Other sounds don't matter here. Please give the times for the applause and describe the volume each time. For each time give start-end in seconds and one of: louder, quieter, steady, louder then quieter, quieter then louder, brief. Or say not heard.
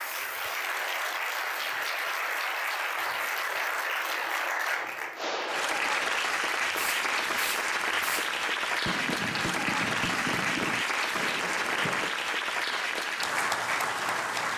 0.0-14.5 steady.